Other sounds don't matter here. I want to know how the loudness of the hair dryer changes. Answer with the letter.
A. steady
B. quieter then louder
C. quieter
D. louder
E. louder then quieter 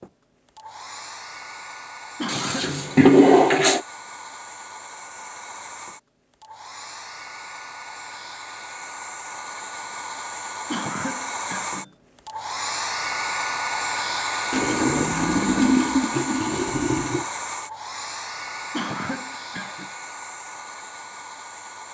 E.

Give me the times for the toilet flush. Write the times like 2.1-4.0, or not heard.
2.2-3.8, 14.5-17.2.